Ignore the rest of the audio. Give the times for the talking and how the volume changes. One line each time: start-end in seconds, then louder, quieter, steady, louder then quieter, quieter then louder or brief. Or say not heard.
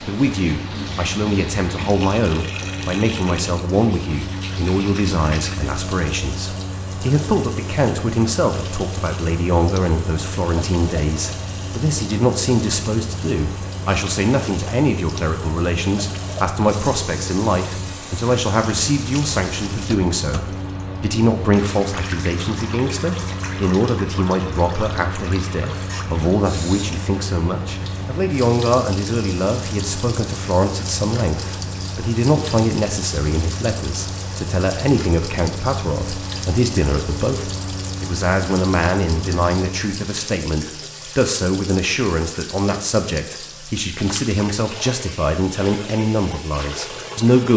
0.1-47.5 steady.